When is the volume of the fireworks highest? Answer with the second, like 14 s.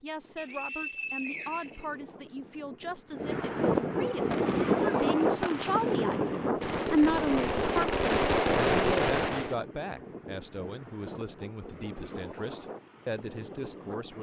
9 s.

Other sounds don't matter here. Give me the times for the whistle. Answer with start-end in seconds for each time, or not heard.
0.3-2.4.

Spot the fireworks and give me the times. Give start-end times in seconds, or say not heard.
4.3-9.6.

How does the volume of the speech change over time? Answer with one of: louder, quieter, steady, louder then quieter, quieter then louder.
louder then quieter.